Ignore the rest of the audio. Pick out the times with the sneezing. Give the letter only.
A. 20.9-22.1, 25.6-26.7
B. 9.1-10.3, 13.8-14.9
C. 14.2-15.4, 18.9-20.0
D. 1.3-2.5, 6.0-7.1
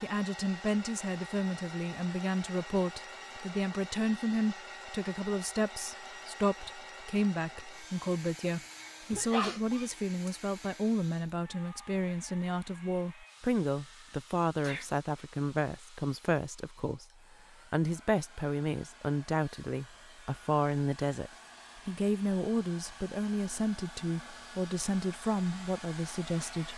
B.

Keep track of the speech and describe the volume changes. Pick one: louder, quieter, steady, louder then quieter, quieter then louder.
steady.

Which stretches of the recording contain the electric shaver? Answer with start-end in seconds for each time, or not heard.
not heard.